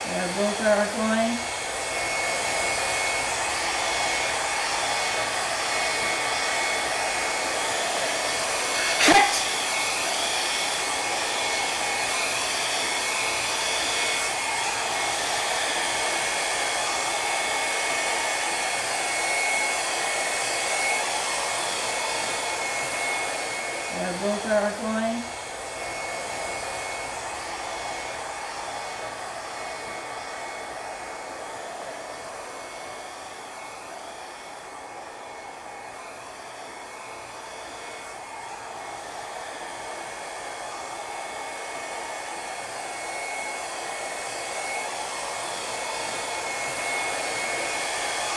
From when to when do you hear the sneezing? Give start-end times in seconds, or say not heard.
8.8-9.4.